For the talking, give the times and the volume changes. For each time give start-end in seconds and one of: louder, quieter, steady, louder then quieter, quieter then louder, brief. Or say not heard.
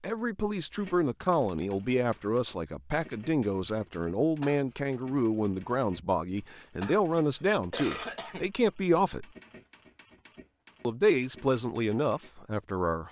0.0-9.2 steady
10.8-13.0 brief.